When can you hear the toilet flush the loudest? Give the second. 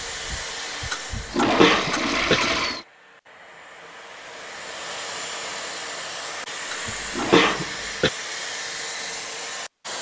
2 s.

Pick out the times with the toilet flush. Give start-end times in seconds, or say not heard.
0.9-2.9, 6.7-7.5.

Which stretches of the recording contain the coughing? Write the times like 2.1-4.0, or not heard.
1.1-2.4, 6.8-8.1.